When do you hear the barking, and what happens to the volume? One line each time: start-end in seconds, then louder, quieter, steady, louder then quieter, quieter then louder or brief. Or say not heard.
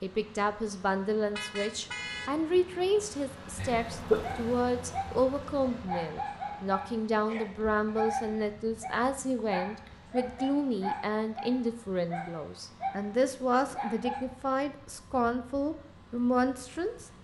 4.2-14.2 steady.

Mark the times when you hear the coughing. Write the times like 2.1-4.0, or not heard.
3.5-4.3.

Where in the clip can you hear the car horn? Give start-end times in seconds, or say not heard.
1.4-2.5.